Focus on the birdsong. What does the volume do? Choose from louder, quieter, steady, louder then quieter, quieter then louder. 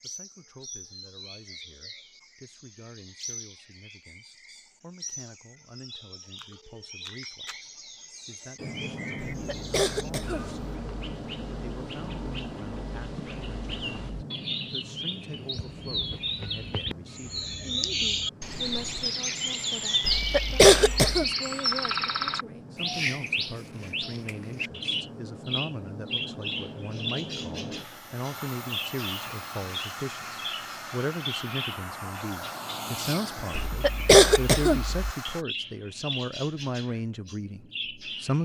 louder then quieter.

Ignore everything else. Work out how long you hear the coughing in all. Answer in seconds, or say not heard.
4 s.